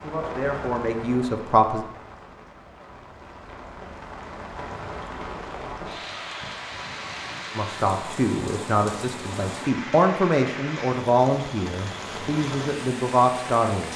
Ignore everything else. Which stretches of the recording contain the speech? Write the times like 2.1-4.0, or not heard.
0.0-1.9, 7.5-13.9.